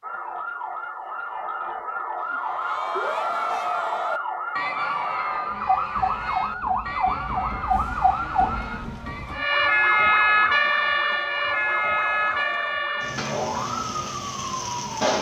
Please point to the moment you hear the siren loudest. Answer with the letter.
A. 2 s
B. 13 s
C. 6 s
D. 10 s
D.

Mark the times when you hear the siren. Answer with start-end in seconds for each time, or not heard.
0.0-15.1.